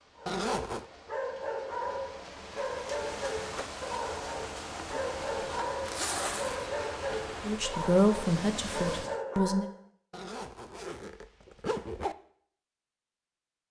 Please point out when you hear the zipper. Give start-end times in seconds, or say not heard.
0.2-0.8, 5.8-6.7, 10.1-12.2.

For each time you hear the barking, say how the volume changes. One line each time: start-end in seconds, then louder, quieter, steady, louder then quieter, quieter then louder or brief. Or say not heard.
0.1-9.8 steady.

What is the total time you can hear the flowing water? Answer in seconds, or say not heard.
9 s.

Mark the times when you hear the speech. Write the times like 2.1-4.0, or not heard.
7.4-9.7.